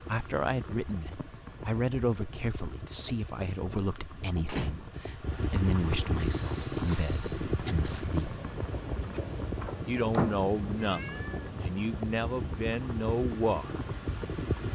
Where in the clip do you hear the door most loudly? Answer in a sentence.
The volume of the door peaks at 10 seconds.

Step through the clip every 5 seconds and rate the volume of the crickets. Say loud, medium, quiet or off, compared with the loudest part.
off, loud, loud.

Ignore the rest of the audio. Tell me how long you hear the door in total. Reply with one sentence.
The door can be heard for 2 seconds in total.